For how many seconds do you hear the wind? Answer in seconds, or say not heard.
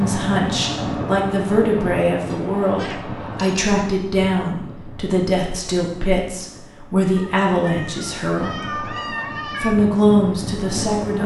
11 s.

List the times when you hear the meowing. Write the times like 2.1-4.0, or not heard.
2.3-3.6, 7.2-9.8.